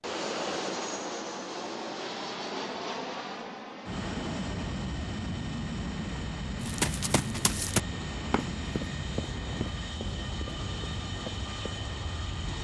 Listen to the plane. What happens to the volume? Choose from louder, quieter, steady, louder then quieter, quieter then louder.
steady.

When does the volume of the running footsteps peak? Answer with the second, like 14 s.
8 s.